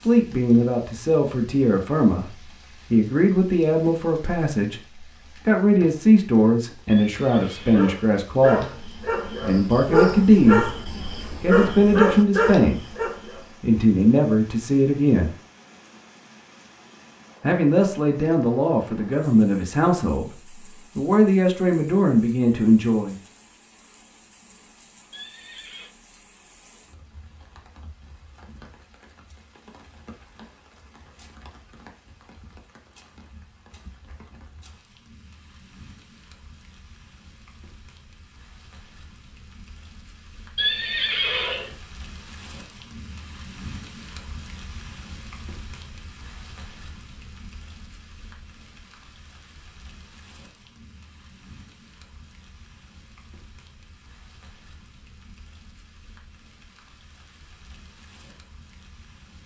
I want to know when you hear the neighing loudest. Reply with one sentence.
The loudest moment of the neighing is at 41 seconds.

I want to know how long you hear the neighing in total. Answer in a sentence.
You can hear the neighing for 3 seconds altogether.